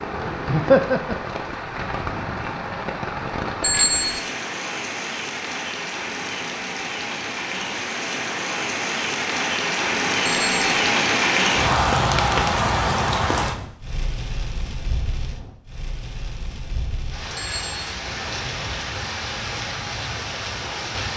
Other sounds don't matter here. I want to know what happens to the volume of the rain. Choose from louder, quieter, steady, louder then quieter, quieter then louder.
louder then quieter.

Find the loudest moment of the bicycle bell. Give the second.
4 s.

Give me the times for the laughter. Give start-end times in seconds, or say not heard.
0.5-1.1.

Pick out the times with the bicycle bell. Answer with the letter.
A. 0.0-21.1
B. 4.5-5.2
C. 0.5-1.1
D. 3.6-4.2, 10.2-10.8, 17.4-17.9
D.